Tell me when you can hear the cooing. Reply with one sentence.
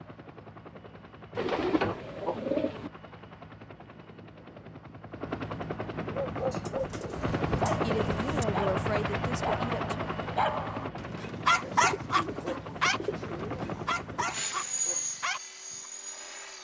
You can hear the cooing from 1.4 to 2.9 s, from 6.5 to 8.4 s and from 11.4 to 14.2 s.